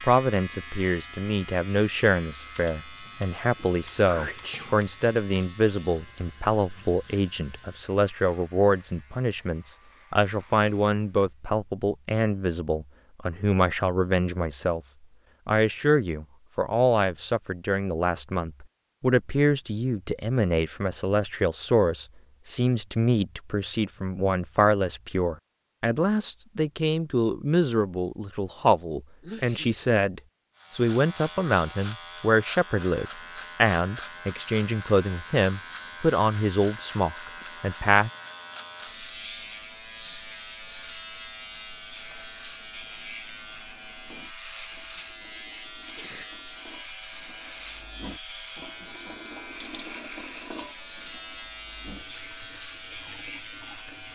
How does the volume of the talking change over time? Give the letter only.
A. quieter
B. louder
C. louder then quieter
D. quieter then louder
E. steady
E.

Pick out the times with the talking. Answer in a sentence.
You can hear the talking from 0.0 to 14.8 s and from 15.4 to 38.1 s.